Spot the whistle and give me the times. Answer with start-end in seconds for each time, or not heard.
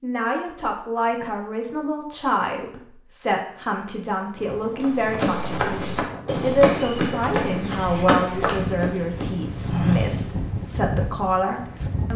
not heard.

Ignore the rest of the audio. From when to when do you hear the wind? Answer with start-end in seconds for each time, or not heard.
4.3-12.1.